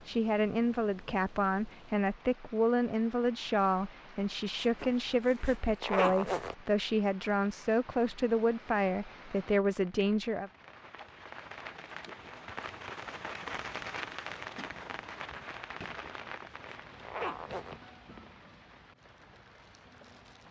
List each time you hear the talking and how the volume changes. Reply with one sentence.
The talking can be heard from 0.1 to 10.5 s, at a steady volume.